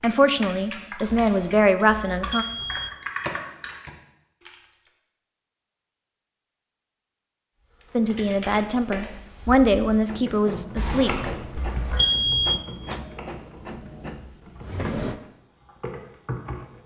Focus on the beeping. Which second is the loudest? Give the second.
12 s.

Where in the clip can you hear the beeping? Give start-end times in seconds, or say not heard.
1.1-3.0, 10.8-12.6.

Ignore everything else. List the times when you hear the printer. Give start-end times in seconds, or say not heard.
10.1-15.2.